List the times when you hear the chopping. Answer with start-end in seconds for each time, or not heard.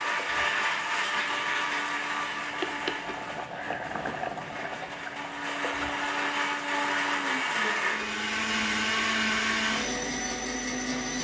not heard.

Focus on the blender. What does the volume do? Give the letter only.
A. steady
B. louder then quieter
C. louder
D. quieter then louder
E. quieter
D.